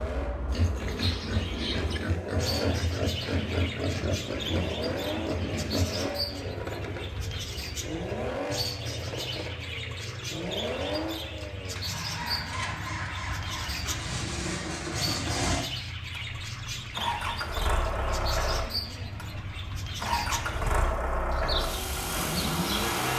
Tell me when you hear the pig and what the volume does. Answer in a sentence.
The pig can be heard from 0.5 to 6.1 s, at a steady volume.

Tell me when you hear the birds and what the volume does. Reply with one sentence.
The birds can be heard from 0.0 to 22.9 s, at a steady volume.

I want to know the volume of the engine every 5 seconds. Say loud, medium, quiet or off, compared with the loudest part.
medium, medium, medium, loud, loud.